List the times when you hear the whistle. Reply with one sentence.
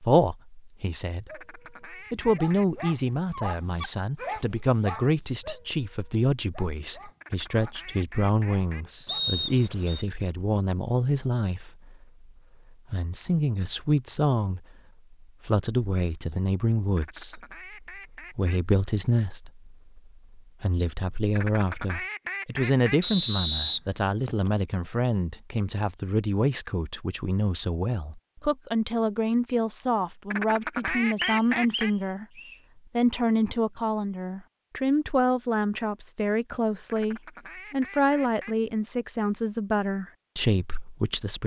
You can hear the whistle from 9.1 to 10.1 s, from 23.0 to 24.5 s and from 31.1 to 32.5 s.